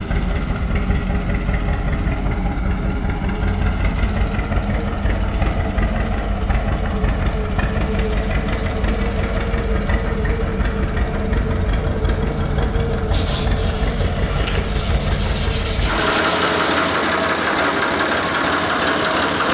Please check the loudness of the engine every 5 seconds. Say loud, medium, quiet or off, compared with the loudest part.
medium, medium, medium, loud.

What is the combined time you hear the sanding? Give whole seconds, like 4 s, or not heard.
4 s.